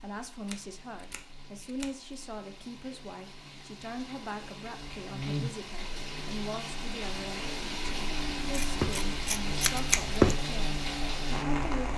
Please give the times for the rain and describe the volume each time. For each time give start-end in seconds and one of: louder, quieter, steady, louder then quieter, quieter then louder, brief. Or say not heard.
0.0-11.9 louder.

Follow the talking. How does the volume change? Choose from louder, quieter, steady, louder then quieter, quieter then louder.
steady.